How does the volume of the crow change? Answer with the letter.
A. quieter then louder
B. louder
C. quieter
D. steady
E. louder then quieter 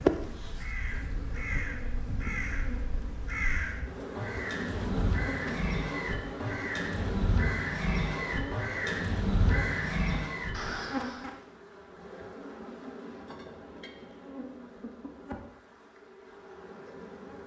B.